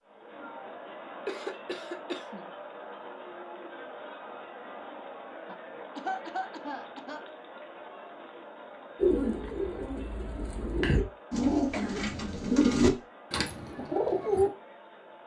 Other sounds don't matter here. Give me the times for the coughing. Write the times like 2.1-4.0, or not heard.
1.2-2.5, 5.5-7.2, 11.5-12.1.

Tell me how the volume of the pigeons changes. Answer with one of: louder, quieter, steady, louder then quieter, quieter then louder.
louder then quieter.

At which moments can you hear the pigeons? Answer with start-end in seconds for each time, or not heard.
8.9-14.5.